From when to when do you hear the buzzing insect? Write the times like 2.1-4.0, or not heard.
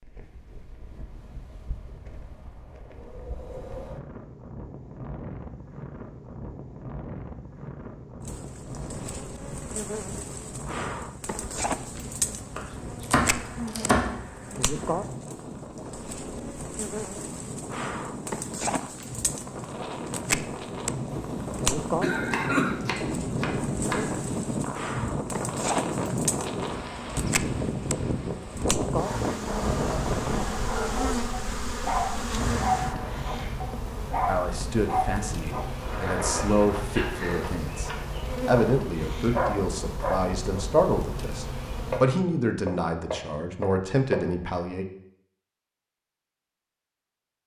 8.2-42.0.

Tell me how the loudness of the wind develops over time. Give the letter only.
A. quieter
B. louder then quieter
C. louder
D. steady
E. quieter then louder
C.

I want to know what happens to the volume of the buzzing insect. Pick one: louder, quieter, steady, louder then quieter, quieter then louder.
steady.